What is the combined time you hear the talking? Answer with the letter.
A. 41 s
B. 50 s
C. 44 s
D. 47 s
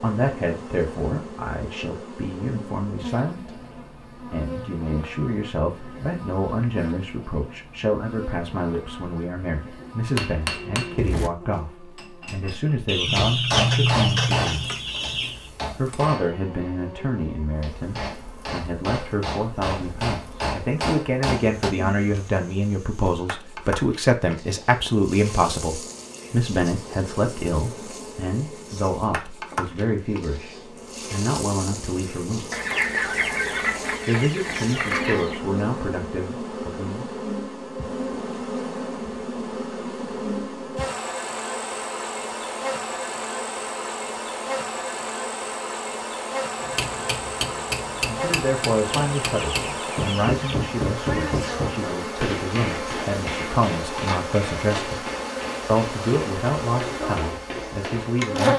C.